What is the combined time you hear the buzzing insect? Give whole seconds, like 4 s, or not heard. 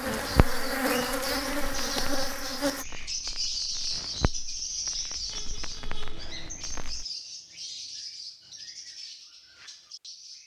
3 s.